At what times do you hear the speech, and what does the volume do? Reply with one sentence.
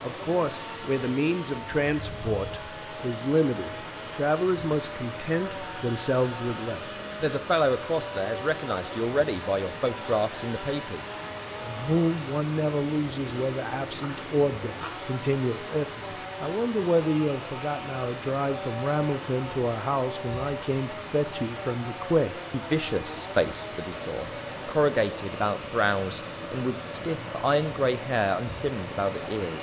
You can hear the speech from 0.0 to 29.5 s, at a steady volume.